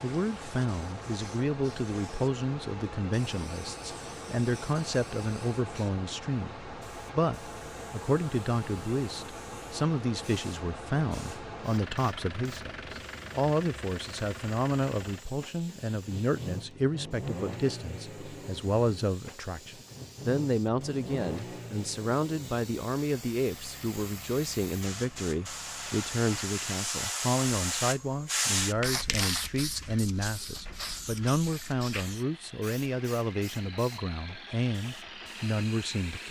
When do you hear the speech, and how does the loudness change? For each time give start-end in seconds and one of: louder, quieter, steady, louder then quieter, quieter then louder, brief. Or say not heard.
0.0-36.2 steady.